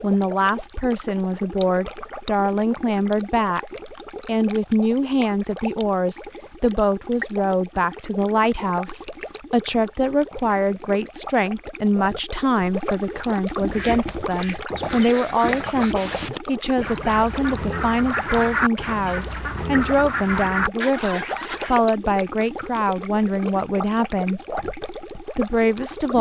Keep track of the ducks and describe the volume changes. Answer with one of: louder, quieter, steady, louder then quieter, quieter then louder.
louder.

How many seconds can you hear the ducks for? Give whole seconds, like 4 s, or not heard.
8 s.